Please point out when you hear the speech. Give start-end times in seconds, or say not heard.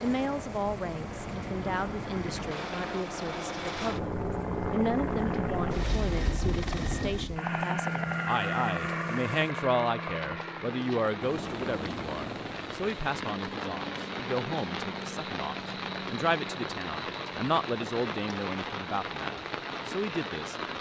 0.0-4.1, 4.7-20.6.